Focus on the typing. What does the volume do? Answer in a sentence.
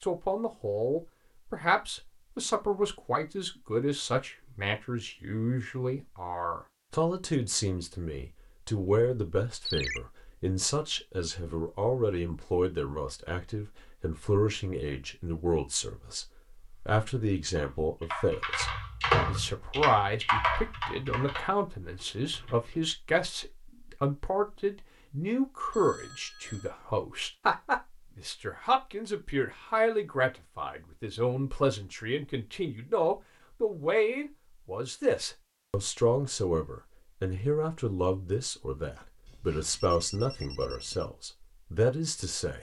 The loudness of the typing goes up, then down.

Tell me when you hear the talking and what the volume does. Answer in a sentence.
The talking can be heard from 0.0 to 16.2 s, at a steady volume; and from 16.9 to 42.5 s, at a steady volume.